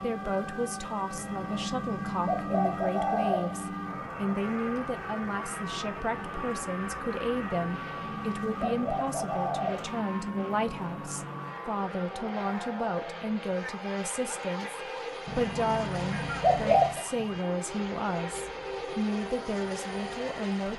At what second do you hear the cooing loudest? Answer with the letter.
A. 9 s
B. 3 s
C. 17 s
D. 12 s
C.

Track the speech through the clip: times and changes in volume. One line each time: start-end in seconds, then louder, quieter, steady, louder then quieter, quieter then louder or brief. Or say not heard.
0.0-20.7 steady.